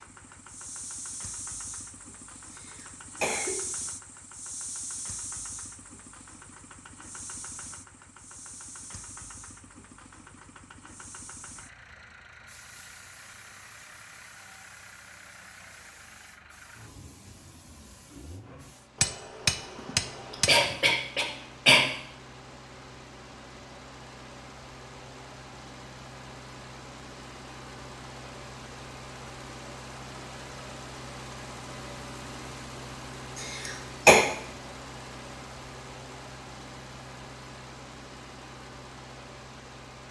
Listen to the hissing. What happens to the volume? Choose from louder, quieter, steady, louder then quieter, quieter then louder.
quieter.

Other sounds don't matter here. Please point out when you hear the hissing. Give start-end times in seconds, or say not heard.
0.0-18.9.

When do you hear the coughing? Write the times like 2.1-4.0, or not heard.
2.5-3.5, 19.8-21.9, 33.4-34.2.